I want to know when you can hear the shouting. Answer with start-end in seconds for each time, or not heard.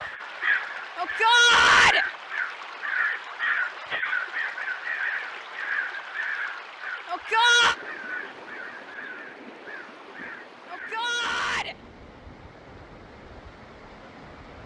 0.9-2.0, 7.0-7.8, 10.7-11.8.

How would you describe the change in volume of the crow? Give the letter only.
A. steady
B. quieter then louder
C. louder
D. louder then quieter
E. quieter
E.